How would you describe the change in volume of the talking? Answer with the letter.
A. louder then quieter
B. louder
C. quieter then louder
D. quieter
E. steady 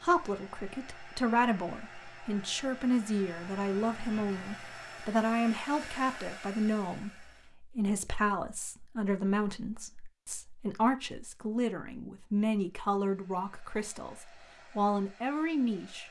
E.